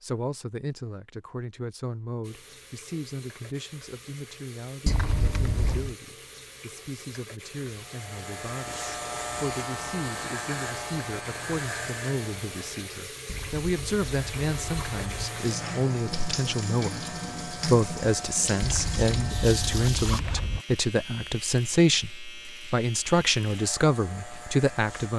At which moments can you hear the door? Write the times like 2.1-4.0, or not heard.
not heard.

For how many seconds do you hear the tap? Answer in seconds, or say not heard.
18 s.